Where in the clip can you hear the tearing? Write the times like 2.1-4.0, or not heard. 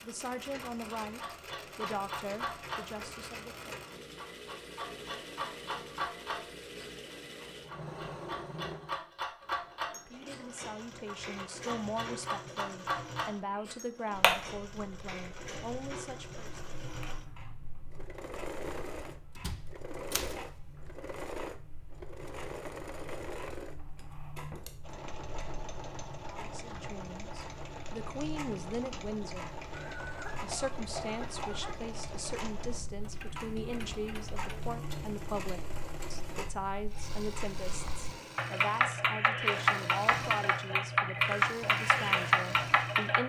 not heard.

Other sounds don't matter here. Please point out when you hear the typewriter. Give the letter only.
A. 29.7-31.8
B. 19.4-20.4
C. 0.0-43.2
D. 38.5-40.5
B.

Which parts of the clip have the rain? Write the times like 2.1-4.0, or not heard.
not heard.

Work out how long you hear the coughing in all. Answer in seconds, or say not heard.
2 s.